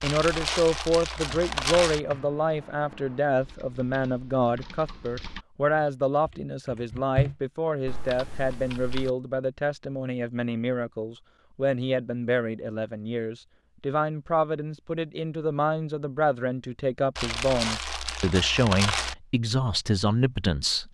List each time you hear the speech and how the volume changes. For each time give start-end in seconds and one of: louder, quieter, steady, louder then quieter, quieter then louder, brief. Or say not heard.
0.0-20.8 steady.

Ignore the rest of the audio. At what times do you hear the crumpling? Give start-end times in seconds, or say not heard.
0.0-2.0, 17.1-19.1.